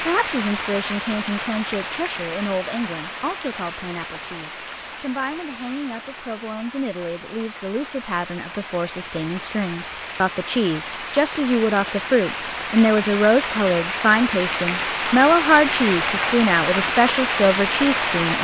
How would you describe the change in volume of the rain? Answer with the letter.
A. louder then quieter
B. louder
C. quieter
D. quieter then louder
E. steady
D.